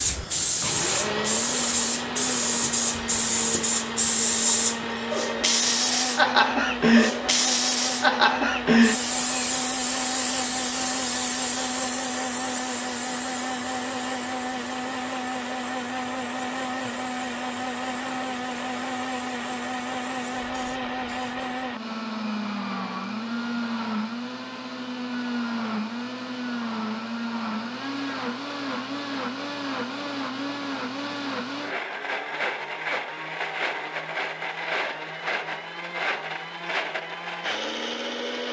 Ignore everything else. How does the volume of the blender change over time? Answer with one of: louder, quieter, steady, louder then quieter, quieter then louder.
steady.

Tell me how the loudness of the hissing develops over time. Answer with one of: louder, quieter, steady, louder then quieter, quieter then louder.
quieter.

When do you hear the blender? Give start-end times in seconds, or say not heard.
0.0-38.4.